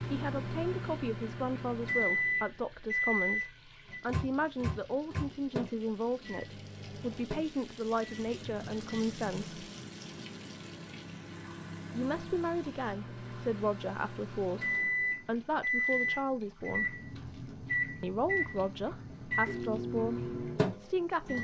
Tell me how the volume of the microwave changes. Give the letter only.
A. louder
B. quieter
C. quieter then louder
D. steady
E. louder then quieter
C.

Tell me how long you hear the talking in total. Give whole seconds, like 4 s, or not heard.
18 s.